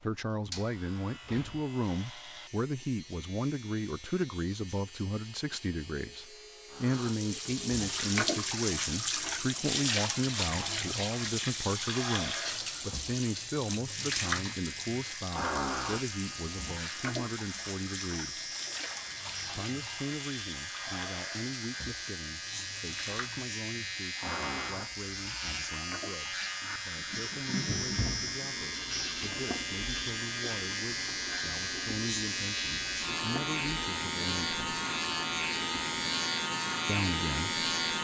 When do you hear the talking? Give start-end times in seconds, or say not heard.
0.0-18.5, 19.6-34.8, 36.9-38.0.